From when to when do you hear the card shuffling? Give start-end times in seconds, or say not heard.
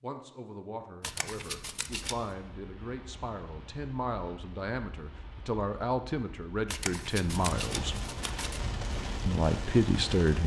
1.0-2.2, 6.7-8.7.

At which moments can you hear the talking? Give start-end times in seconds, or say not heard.
0.0-8.0, 9.2-10.4.